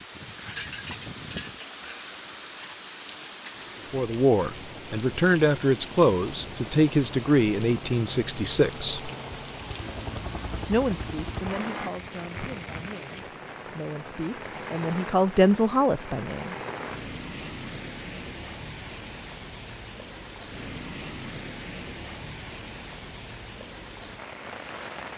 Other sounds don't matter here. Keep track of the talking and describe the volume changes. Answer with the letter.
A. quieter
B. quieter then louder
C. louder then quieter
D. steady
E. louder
B.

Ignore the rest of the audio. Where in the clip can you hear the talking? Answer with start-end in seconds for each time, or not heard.
3.9-9.1, 10.7-16.6.